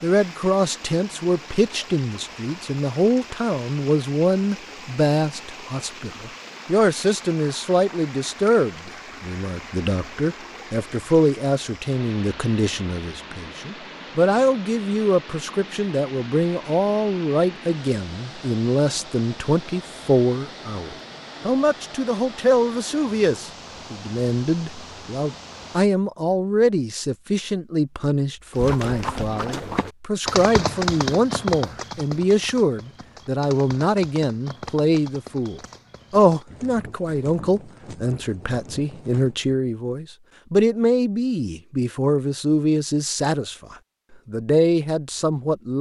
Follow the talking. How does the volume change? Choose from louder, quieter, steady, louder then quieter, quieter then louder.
steady.